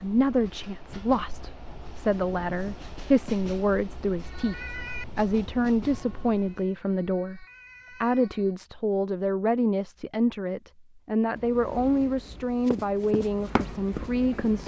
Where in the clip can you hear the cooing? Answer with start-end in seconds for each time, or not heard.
not heard.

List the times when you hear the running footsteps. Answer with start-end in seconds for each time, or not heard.
12.7-14.6.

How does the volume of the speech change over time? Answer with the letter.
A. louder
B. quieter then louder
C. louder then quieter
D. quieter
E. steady
E.